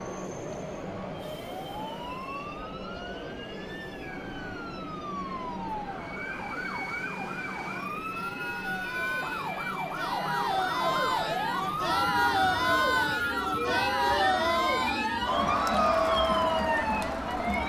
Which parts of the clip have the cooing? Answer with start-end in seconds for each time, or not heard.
not heard.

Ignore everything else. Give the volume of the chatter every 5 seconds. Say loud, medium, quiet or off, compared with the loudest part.
quiet, quiet, loud, loud.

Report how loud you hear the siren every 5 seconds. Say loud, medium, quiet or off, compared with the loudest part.
quiet, medium, loud, loud.